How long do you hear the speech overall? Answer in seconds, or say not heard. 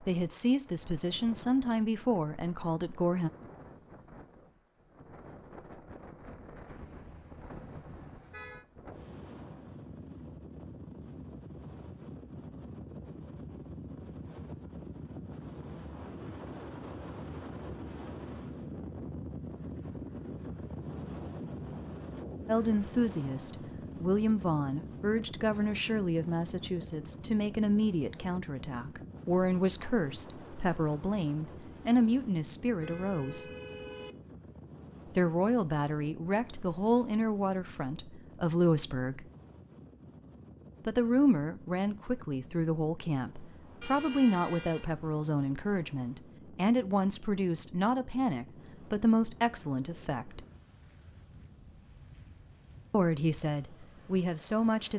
30 s.